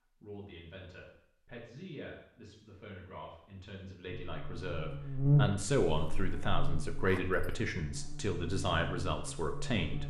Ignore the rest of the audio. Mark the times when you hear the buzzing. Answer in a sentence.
The buzzing can be heard from 4.1 to 10.0 s.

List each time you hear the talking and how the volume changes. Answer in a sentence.
The talking can be heard from 0.2 to 10.0 s, getting louder.